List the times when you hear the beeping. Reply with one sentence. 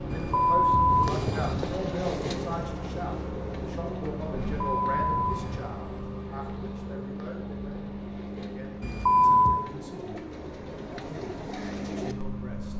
You can hear the beeping from 0.1 to 1.8 s, from 4.4 to 5.7 s and from 8.8 to 9.6 s.